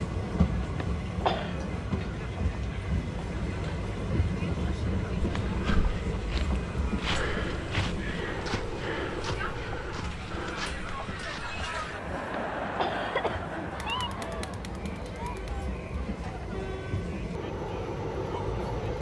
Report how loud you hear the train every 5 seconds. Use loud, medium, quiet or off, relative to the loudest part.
loud, loud, medium, loud.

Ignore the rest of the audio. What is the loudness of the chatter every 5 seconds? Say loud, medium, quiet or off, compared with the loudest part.
medium, medium, loud, medium.